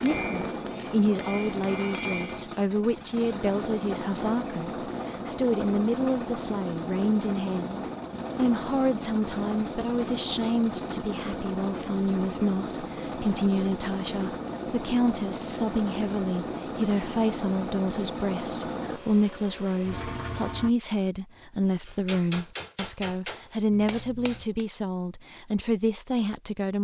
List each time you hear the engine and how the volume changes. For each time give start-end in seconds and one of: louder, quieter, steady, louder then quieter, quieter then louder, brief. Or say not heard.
0.0-20.7 steady.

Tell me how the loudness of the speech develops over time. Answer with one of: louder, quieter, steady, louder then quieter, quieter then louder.
steady.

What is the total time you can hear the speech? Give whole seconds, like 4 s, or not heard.
27 s.